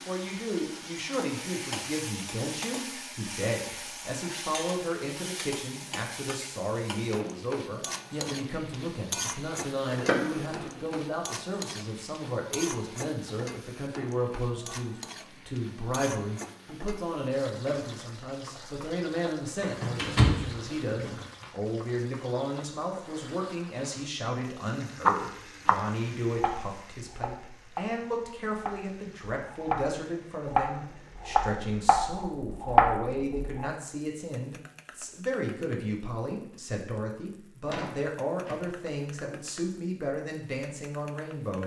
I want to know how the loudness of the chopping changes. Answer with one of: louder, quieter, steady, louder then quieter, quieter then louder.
quieter then louder.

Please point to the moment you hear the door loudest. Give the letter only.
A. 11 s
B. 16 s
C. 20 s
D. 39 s
C.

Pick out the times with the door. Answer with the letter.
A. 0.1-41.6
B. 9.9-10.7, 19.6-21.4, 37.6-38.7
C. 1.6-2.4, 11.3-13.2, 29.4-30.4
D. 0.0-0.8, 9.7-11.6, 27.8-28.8
B.